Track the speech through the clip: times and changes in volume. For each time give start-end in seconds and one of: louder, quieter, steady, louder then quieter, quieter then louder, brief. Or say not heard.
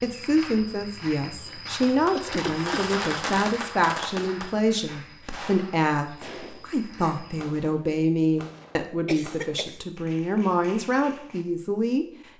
0.0-12.1 steady.